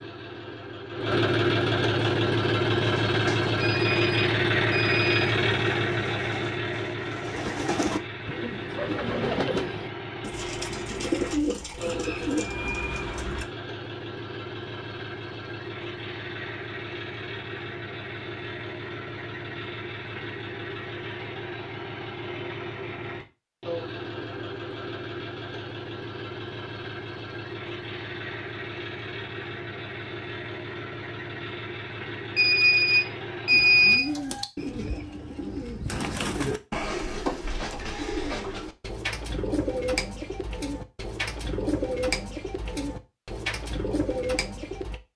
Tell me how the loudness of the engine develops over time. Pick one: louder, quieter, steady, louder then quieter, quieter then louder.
quieter.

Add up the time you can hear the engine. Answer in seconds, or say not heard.
34 s.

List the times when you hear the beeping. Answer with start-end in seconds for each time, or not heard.
3.6-5.3, 32.4-34.0.